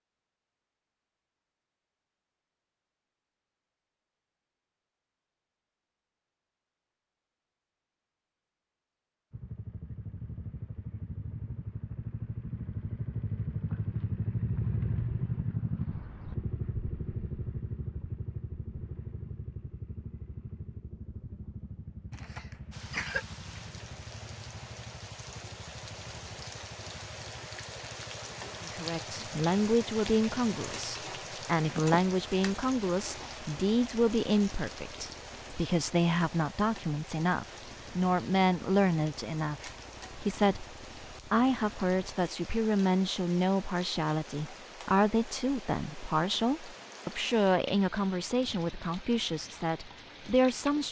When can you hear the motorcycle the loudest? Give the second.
15 s.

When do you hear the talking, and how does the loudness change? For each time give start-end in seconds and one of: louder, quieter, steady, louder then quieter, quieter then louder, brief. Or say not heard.
28.6-50.8 steady.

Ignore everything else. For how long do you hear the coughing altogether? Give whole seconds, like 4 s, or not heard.
2 s.